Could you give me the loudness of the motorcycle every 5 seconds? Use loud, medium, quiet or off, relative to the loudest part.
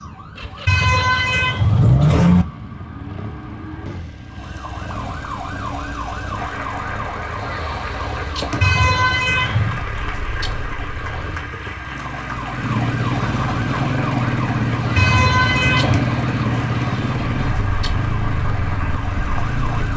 quiet, quiet, loud, loud.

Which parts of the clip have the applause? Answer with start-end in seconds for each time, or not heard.
6.3-19.9.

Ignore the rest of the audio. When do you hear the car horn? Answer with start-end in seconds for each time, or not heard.
0.7-2.5, 8.6-9.8, 14.9-16.0.